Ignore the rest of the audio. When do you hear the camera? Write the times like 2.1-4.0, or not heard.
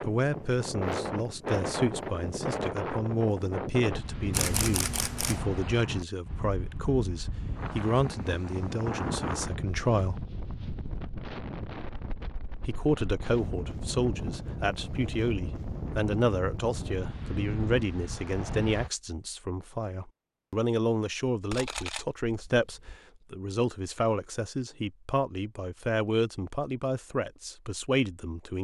4.3-5.5, 21.5-23.0.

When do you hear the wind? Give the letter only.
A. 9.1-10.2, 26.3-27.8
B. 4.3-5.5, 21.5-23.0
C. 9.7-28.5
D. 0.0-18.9
D.